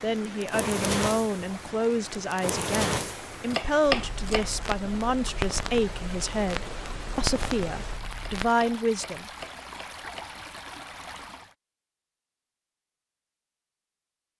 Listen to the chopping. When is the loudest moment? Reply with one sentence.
The loudest moment of the chopping is at 4 seconds.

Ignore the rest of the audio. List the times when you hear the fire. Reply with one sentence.
You can hear the fire from 0.4 to 8.5 s.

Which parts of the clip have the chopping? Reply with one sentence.
You can hear the chopping from 3.5 to 4.8 s and from 8.2 to 10.7 s.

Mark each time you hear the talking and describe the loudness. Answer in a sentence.
You can hear the talking from 0.0 to 9.2 s, at a steady volume.